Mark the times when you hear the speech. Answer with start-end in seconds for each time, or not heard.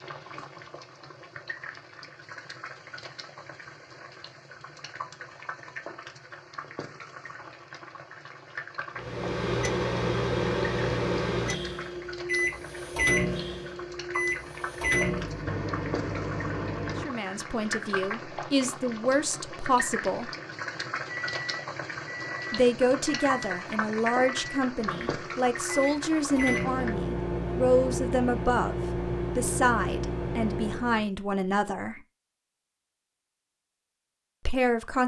16.9-20.3, 22.5-32.0, 34.5-35.0.